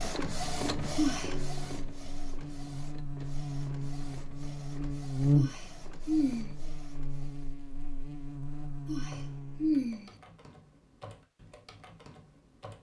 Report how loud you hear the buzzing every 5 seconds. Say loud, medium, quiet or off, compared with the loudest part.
medium, loud, off.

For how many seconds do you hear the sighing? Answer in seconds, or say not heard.
3 s.